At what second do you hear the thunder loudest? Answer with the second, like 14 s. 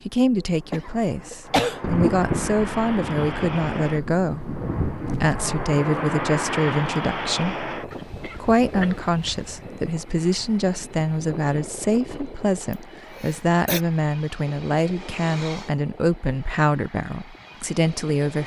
2 s.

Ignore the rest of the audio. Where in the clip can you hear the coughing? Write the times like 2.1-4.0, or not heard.
0.3-1.9, 7.9-9.6, 12.7-13.8.